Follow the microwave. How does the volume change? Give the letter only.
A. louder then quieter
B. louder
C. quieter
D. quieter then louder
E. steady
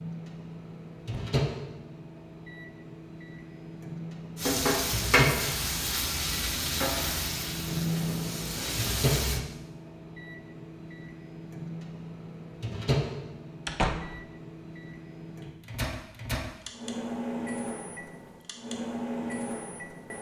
E.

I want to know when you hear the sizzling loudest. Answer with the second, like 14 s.
5 s.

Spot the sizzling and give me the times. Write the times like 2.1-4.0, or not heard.
4.3-9.4.